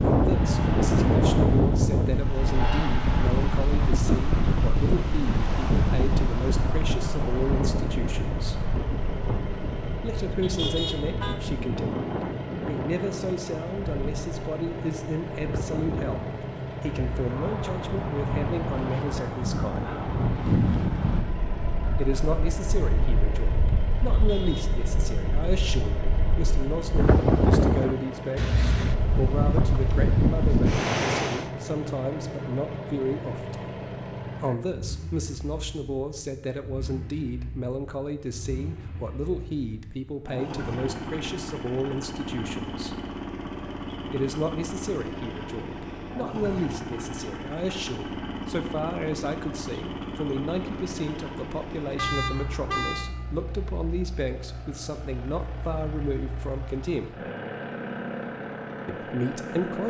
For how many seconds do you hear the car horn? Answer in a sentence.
The car horn can be heard for 3 seconds in total.